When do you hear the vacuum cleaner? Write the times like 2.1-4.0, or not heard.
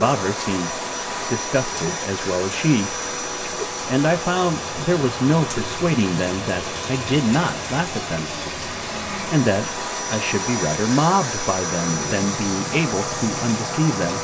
0.0-14.1.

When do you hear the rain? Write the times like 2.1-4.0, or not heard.
0.0-14.1.